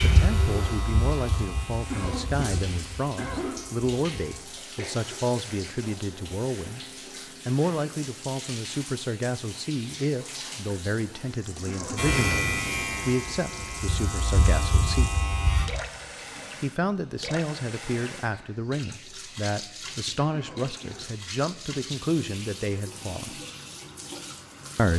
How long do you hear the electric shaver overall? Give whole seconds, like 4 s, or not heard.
8 s.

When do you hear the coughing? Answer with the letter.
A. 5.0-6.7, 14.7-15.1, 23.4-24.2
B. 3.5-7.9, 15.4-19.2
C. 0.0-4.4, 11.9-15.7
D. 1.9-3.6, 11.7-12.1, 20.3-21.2
D.